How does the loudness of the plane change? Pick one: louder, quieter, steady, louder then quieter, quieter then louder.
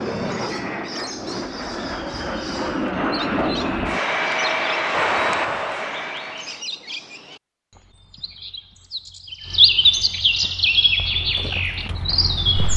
louder.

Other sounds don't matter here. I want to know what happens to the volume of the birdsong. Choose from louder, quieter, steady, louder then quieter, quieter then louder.
louder.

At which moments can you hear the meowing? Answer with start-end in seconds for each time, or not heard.
not heard.